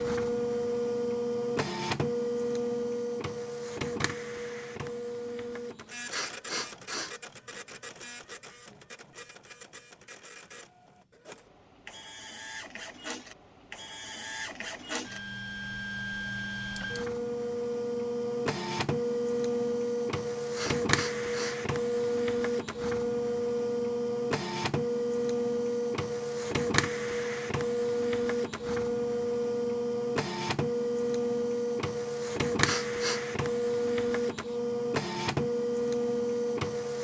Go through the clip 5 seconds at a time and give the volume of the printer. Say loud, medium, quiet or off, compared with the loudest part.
loud, quiet, quiet, loud, loud, loud, loud, loud.